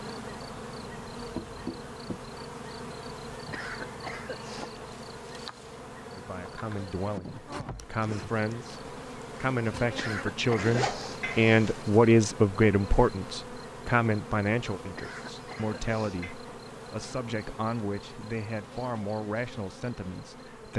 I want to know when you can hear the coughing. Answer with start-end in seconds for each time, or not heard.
3.5-4.7, 9.9-11.5, 14.9-16.4.